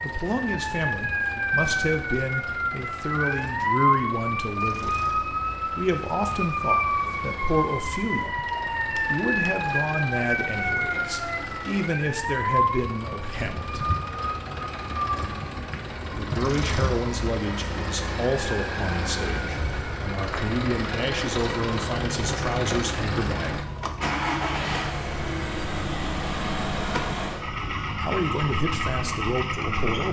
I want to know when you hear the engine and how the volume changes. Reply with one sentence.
You can hear the engine from 0.0 to 30.0 s, getting louder.